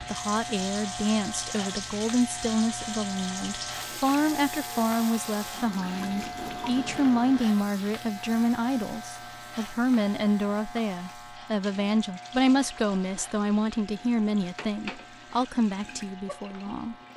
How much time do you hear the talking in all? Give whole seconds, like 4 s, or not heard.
17 s.